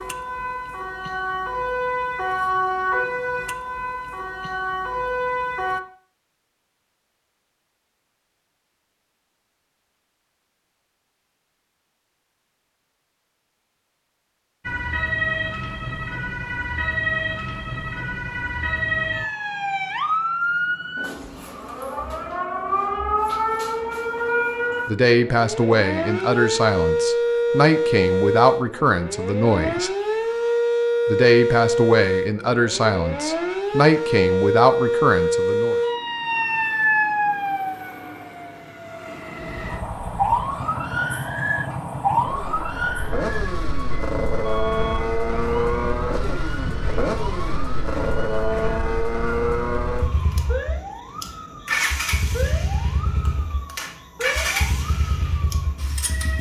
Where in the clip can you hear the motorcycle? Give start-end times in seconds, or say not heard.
39.5-56.3.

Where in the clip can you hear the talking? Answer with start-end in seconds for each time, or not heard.
24.9-29.9, 31.1-35.8.